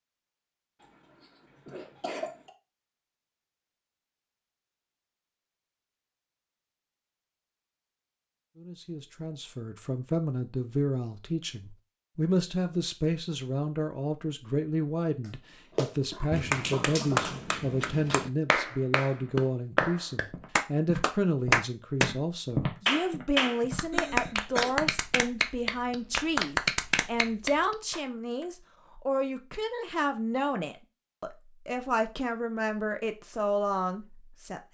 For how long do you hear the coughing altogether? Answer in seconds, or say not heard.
4 s.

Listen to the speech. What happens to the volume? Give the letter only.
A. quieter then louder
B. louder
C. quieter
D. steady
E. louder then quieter
D.